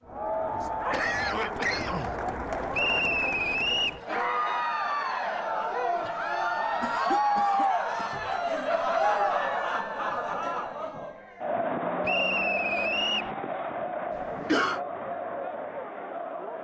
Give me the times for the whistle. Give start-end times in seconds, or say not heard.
2.7-4.0, 12.0-13.3.